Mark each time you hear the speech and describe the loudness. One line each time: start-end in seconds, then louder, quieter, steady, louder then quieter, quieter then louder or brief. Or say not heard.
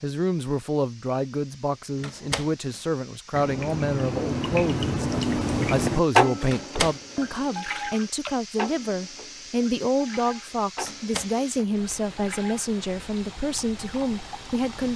0.0-14.9 steady.